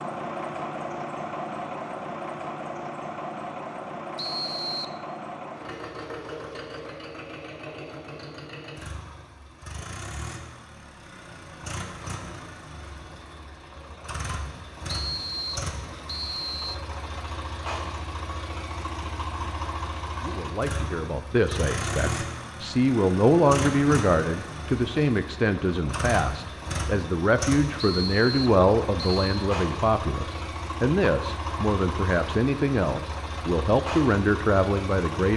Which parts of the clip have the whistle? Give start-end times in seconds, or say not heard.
4.2-5.0, 14.9-16.8, 27.8-29.4.